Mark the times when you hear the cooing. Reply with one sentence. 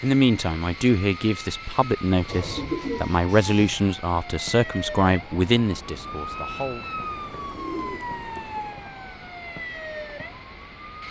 You can hear the cooing from 2.2 to 3.8 s and from 7.0 to 8.8 s.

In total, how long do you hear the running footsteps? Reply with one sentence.
The running footsteps can't be heard in this clip.